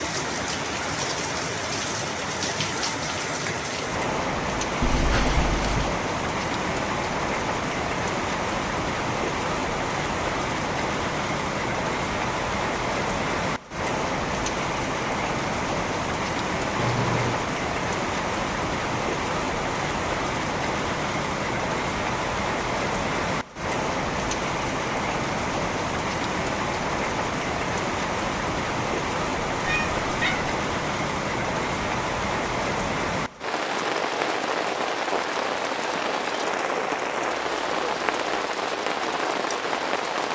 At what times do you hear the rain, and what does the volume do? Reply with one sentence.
The rain can be heard from 0.0 to 40.3 s, at a steady volume.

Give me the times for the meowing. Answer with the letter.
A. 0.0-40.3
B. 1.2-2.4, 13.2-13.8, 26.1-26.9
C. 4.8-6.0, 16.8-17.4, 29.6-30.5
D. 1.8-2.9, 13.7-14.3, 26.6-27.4
C.